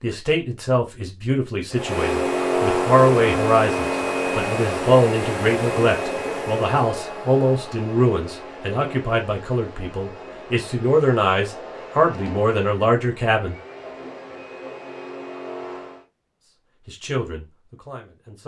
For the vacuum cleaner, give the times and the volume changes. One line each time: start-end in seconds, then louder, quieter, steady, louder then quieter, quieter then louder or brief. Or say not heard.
1.7-16.1 quieter.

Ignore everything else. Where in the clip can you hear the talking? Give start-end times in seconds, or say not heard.
0.0-13.6, 16.9-18.4.